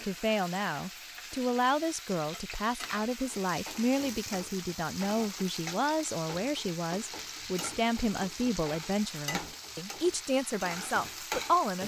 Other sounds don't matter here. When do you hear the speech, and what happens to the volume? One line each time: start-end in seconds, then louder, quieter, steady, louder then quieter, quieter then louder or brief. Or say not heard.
0.0-11.8 steady.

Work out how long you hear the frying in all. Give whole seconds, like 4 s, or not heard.
12 s.